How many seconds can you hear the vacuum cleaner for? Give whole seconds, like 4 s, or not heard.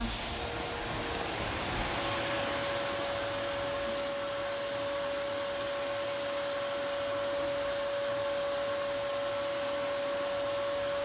11 s.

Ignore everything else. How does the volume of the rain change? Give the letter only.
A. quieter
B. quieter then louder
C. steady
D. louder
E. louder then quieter
A.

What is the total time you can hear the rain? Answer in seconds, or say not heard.
11 s.